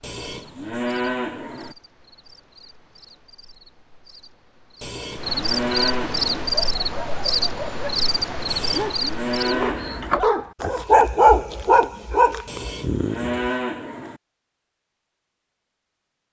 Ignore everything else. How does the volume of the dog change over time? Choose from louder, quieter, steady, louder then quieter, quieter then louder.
louder then quieter.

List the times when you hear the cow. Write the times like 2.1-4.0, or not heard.
0.0-1.8, 4.8-6.5, 8.4-10.2, 12.4-14.2.